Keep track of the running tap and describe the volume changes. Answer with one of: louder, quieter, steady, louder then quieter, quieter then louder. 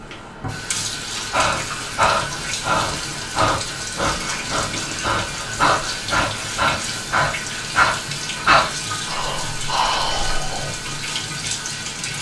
steady.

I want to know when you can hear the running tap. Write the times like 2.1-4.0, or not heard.
0.0-12.1.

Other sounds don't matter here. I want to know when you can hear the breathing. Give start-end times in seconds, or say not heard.
1.1-10.8.